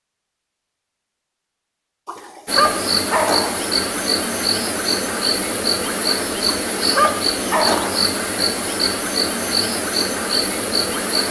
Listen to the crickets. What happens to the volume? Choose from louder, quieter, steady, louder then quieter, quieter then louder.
steady.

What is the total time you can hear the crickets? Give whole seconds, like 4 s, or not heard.
9 s.